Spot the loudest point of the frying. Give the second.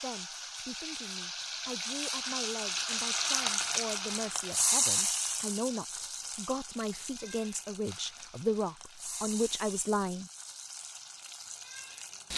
5 s.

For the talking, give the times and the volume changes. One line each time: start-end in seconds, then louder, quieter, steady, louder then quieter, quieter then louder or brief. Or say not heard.
0.0-10.3 louder.